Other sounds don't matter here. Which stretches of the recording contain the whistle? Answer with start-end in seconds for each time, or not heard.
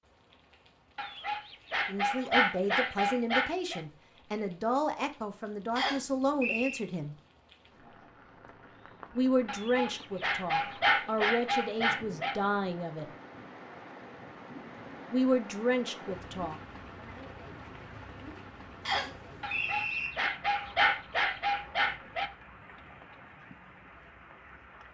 5.8-6.8, 18.9-20.1.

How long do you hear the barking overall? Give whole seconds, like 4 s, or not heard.
9 s.